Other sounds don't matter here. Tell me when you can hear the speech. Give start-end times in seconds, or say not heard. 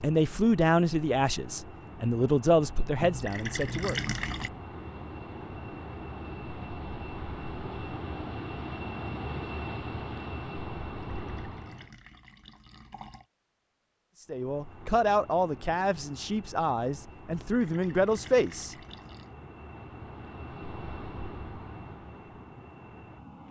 0.0-4.0, 14.2-18.8.